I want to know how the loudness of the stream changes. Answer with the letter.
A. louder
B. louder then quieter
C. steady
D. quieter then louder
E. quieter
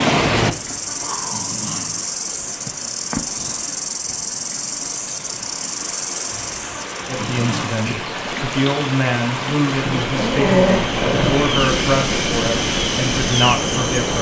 A.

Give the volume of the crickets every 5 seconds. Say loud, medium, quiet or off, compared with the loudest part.
loud, medium, loud.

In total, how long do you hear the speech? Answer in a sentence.
You can hear the speech for 7 seconds altogether.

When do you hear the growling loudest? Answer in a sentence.
The volume of the growling peaks at 11 seconds.